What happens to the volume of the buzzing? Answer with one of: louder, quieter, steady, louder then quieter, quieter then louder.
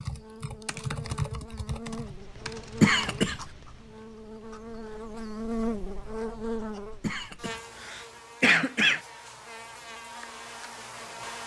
louder then quieter.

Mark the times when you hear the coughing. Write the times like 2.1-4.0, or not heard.
2.8-3.5, 7.0-9.0.